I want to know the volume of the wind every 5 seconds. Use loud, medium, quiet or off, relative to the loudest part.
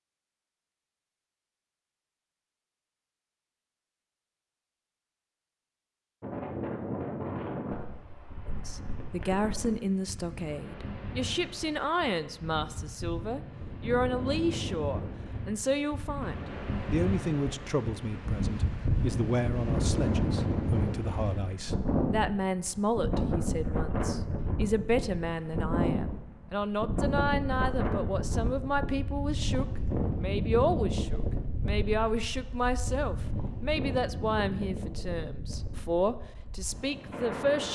off, medium, medium, loud, loud, loud, loud, medium.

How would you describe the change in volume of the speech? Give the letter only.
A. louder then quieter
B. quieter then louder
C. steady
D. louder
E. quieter
C.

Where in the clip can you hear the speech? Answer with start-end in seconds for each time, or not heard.
8.4-37.7.